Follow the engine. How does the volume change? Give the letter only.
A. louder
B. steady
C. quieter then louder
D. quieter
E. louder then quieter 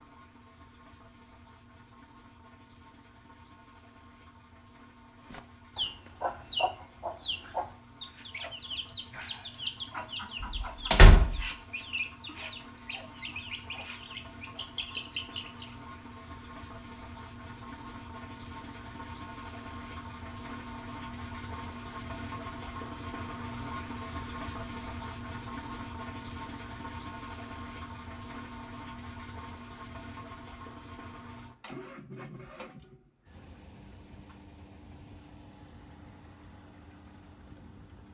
E.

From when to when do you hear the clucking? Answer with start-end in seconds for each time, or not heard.
5.3-15.8.